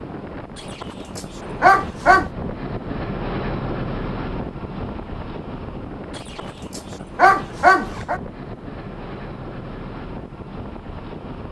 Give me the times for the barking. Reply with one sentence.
The barking can be heard from 0.8 to 2.3 s and from 6.3 to 8.2 s.